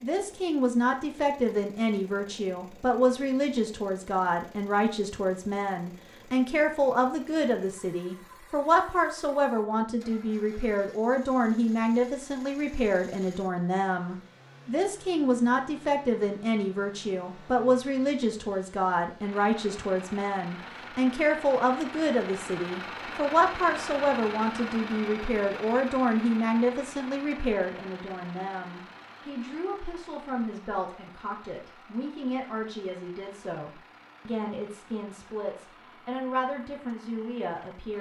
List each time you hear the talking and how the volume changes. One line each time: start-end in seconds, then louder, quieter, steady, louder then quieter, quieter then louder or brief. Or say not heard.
0.0-37.9 quieter.